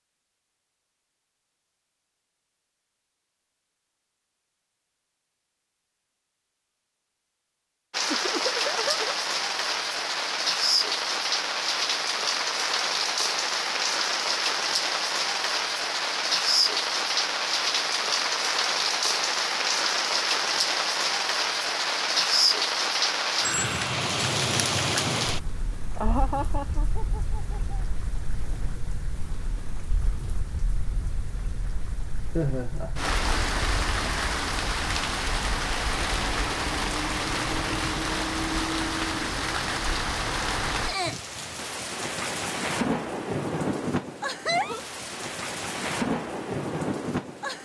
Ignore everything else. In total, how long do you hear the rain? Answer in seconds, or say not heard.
40 s.